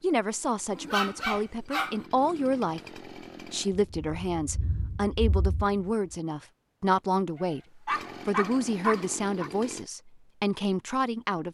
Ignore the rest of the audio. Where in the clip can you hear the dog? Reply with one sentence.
You can hear the dog from 0.7 to 2.0 s and from 7.4 to 9.5 s.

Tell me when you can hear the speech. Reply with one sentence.
The speech can be heard from 0.0 to 11.4 s.